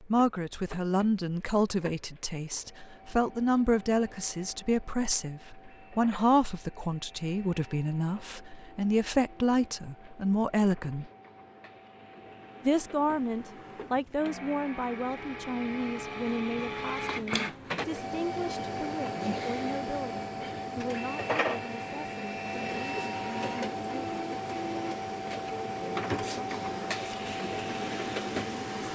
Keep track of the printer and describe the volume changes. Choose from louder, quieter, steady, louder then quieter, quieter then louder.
louder.